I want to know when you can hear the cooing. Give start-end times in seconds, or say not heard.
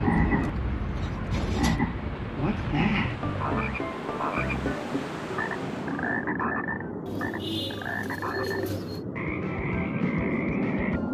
0.3-1.9, 7.0-9.1.